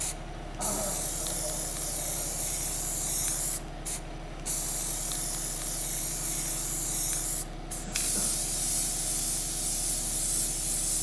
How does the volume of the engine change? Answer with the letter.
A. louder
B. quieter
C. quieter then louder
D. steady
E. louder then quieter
D.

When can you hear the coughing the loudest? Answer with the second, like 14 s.
1 s.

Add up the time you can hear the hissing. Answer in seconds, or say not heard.
11 s.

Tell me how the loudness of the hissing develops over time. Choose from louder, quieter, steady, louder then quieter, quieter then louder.
steady.